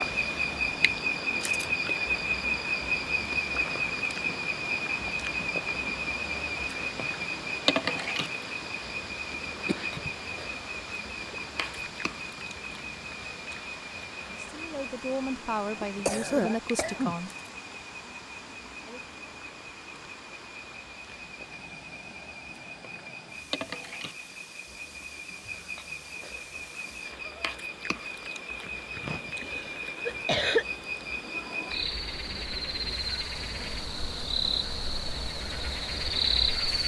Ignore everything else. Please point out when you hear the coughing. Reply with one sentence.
You can hear the coughing from 9.7 to 10.1 s, from 15.8 to 17.2 s and from 28.6 to 30.6 s.